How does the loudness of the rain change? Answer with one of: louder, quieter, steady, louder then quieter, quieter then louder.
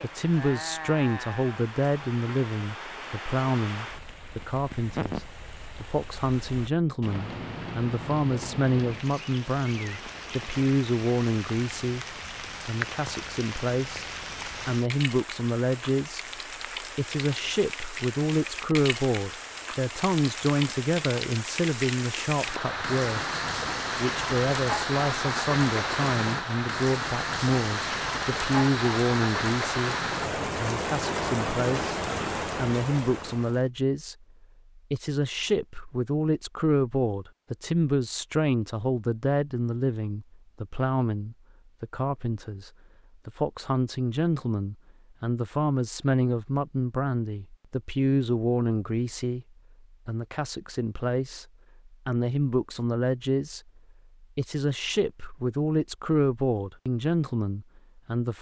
louder.